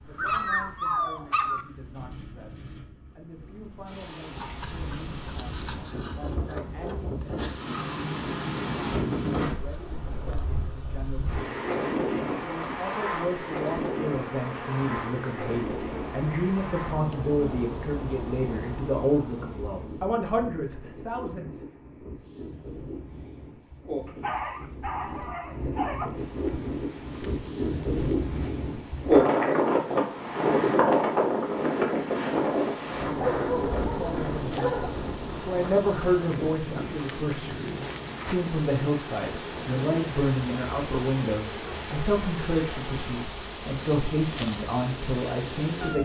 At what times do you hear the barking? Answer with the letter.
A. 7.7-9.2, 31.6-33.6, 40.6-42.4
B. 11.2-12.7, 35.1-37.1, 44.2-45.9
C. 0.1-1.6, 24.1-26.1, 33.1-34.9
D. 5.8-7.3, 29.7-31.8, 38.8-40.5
C.